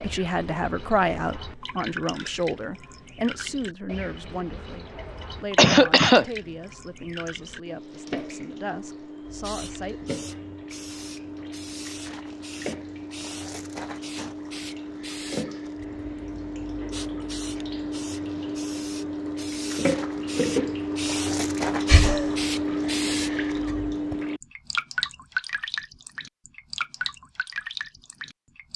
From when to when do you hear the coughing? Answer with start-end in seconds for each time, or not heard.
5.5-6.2, 21.9-22.3.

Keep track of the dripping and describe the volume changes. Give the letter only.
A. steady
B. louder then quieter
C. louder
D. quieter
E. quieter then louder
C.